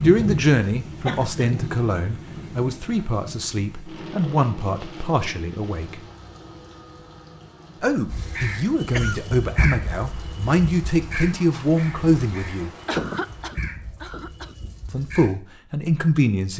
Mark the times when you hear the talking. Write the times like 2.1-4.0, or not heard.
0.0-6.0, 7.8-12.7, 14.8-16.5.